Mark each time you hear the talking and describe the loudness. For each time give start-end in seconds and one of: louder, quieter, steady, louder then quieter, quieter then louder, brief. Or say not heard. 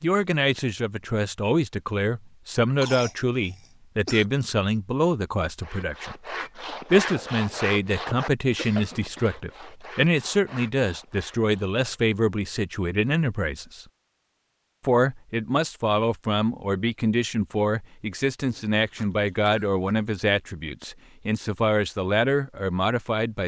0.0-13.8 steady
14.8-23.4 steady.